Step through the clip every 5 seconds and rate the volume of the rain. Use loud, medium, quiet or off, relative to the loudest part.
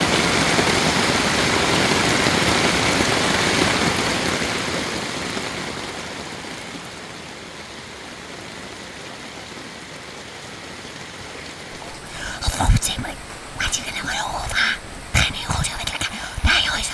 loud, quiet, quiet, quiet.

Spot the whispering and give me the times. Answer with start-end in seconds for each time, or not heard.
11.8-16.8.